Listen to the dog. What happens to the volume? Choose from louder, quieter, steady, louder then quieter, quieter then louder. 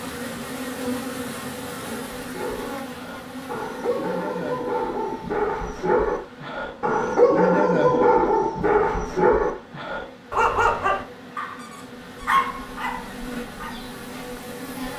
louder then quieter.